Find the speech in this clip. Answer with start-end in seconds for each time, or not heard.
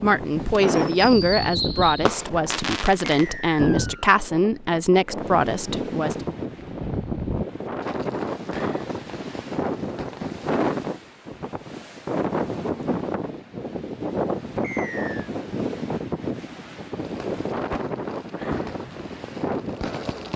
0.0-6.2.